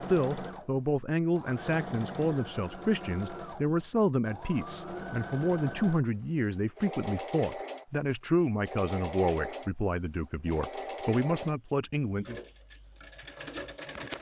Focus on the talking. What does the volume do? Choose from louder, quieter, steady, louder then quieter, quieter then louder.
steady.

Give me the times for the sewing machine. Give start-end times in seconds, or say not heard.
0.0-14.1.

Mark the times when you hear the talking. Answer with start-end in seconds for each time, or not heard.
0.0-12.4.